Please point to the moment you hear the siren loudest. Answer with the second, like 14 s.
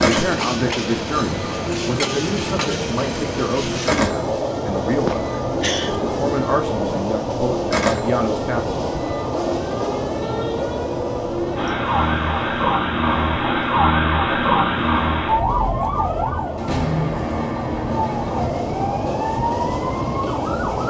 14 s.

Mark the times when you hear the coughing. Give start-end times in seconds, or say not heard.
5.0-6.0.